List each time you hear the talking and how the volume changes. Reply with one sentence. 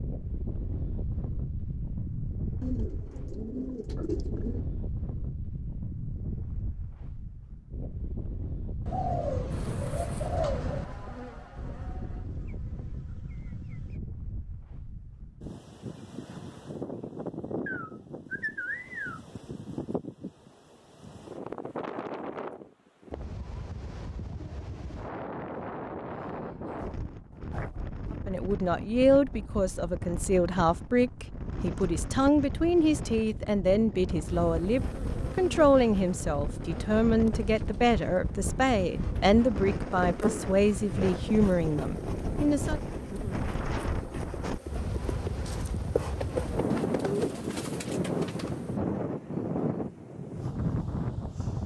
You can hear the talking from 28.2 to 42.8 s, at a steady volume.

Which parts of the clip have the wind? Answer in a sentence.
The wind can be heard from 0.0 to 51.6 s.